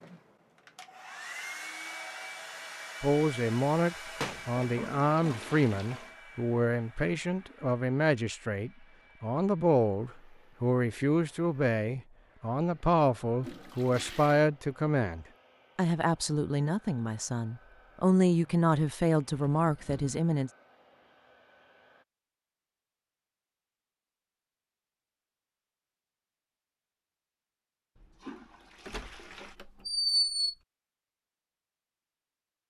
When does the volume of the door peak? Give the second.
30 s.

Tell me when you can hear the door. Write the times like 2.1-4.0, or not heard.
4.2-4.7, 19.6-20.1, 28.9-30.6.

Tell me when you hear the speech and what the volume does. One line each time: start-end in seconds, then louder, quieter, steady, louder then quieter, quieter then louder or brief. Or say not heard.
3.0-20.5 steady.